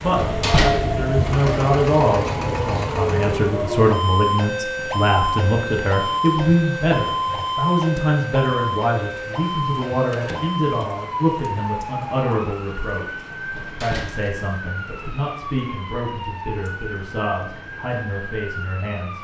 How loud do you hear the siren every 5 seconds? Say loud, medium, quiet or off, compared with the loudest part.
loud, loud, medium, medium.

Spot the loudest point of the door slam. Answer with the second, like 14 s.
1 s.